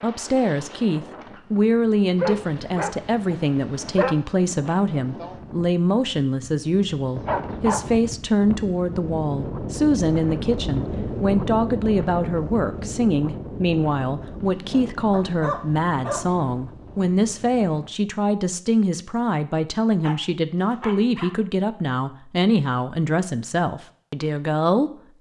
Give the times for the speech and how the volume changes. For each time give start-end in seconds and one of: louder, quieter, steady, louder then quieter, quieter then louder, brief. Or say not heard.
0.0-24.9 steady.